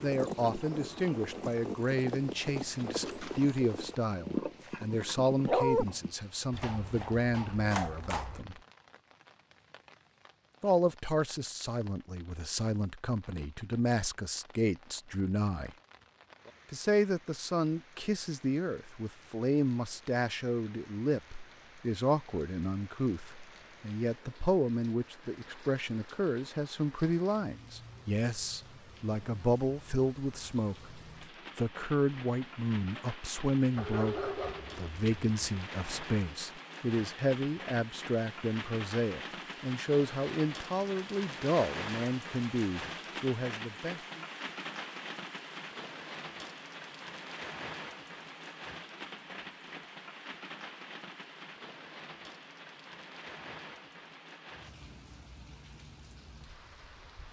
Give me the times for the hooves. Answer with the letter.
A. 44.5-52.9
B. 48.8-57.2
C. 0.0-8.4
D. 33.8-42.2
C.